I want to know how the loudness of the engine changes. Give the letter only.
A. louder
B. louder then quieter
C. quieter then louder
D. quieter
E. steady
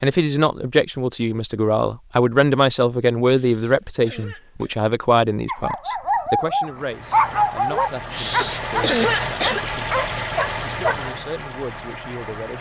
B.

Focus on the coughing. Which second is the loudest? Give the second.
9 s.